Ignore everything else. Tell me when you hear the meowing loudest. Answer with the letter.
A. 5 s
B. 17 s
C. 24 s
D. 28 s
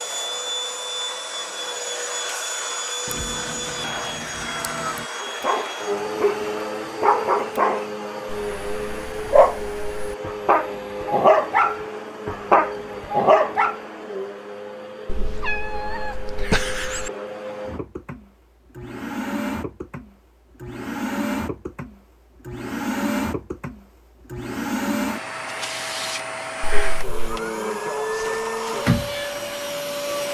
B.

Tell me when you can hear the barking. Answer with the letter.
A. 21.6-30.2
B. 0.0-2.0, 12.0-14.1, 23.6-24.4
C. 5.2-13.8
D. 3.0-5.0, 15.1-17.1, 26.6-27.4
C.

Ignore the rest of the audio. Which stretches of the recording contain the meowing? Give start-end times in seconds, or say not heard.
3.0-5.0, 15.1-17.1, 26.6-27.4.